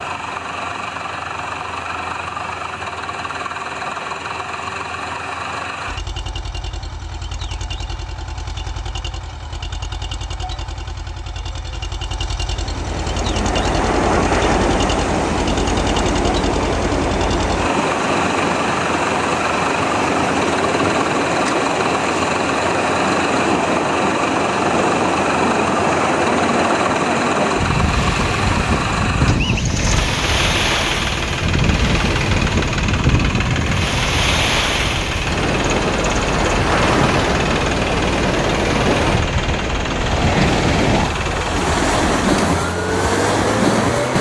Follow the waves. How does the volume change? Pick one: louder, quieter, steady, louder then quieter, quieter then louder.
steady.